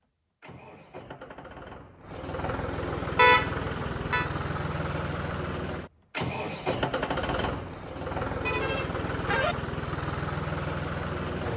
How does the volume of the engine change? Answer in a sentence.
The volume of the engine goes up.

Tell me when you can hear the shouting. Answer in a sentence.
The shouting can be heard from 8.4 to 8.8 s.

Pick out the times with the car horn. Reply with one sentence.
You can hear the car horn from 3.1 to 4.2 s and from 8.4 to 9.6 s.